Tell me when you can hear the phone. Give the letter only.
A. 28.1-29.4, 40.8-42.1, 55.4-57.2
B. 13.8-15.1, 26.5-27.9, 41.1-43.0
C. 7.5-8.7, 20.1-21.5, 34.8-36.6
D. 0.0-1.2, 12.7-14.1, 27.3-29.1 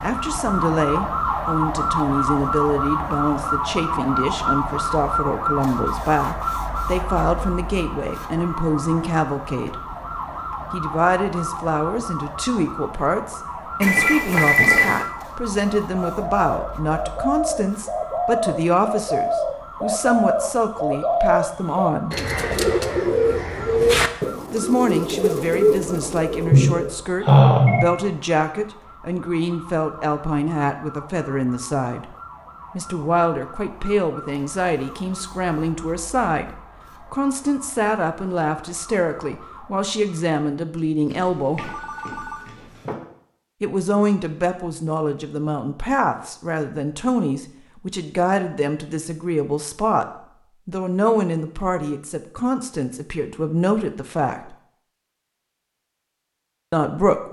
B.